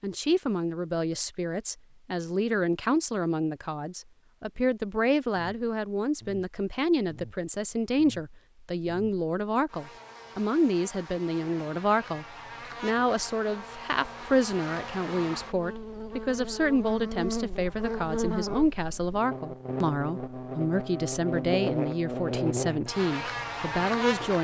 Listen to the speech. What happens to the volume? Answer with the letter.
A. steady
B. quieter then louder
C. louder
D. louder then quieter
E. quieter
A.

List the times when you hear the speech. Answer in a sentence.
You can hear the speech from 0.0 to 24.4 s.